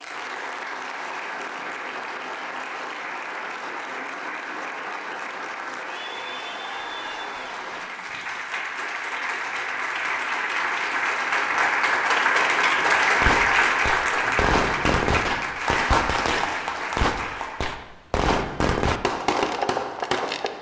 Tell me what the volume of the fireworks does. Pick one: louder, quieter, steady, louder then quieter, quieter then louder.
steady.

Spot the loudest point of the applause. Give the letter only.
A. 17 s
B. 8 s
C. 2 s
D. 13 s
D.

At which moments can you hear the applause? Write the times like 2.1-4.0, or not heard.
0.0-17.7.